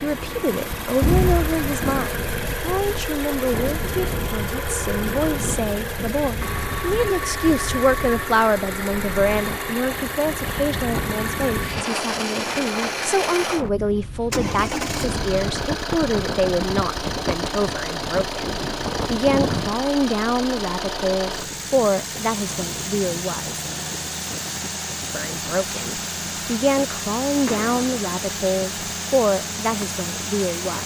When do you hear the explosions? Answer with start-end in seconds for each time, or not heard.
1.0-1.9, 27.4-28.1.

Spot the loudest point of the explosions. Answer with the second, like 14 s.
1 s.